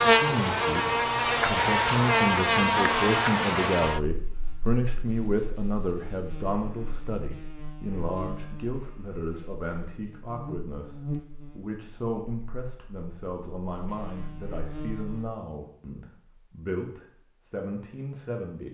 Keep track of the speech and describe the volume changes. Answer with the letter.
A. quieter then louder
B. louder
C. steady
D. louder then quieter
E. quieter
E.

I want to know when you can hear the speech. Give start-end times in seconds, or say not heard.
0.0-18.6.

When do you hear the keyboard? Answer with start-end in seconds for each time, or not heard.
not heard.